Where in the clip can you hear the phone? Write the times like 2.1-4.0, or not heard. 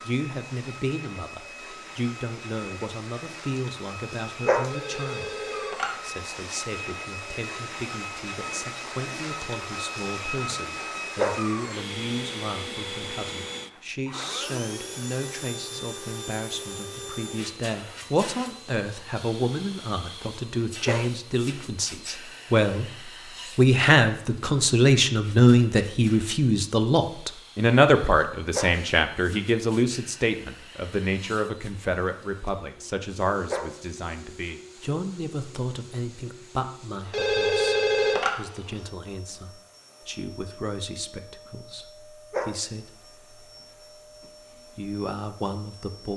4.7-5.9, 37.1-38.3.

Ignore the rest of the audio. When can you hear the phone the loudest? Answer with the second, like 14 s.
38 s.